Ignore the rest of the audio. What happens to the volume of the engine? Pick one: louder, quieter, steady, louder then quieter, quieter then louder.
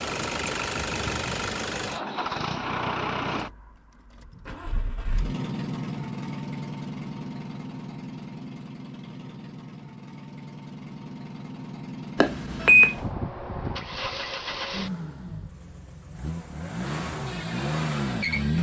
quieter then louder.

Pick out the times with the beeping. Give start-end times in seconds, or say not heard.
12.2-12.9.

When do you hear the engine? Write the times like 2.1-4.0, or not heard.
0.0-18.5.